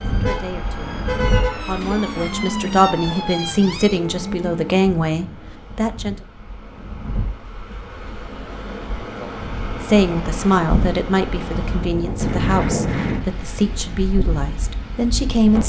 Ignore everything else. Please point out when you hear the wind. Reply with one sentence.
The wind can be heard from 0.0 to 15.6 s.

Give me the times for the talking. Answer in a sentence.
The talking can be heard from 0.0 to 6.2 s and from 9.2 to 15.6 s.